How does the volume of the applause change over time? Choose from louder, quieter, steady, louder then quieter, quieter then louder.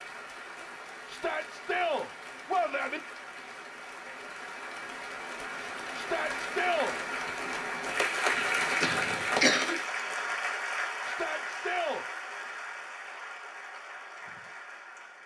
louder then quieter.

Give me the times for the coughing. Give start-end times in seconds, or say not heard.
8.3-9.8.